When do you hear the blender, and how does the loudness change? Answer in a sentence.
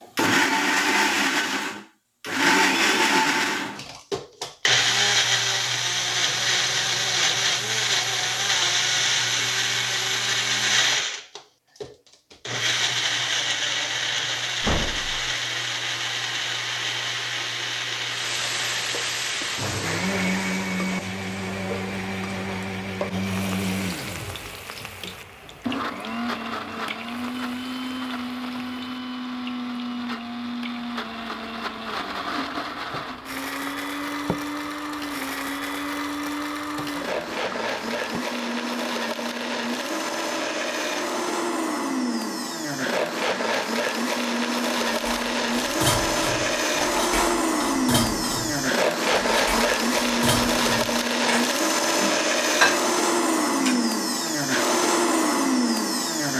The blender can be heard from 0.0 to 56.3 s, getting quieter then louder.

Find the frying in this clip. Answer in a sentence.
You can hear the frying from 18.1 to 38.2 s.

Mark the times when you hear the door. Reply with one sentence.
The door can be heard from 14.6 to 15.2 s.